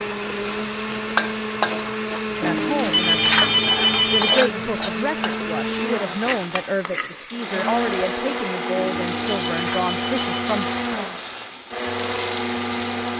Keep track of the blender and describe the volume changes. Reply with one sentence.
The loudness of the blender stays about the same.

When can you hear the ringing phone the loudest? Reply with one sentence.
The volume of the ringing phone peaks at 3 seconds.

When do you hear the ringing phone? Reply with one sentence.
You can hear the ringing phone from 2.4 to 4.5 s and from 8.8 to 10.3 s.